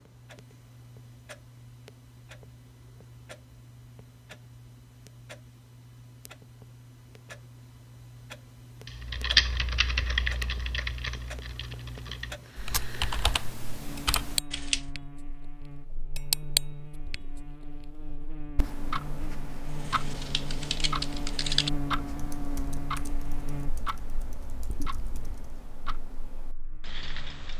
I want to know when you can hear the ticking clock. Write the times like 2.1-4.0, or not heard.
0.0-27.5.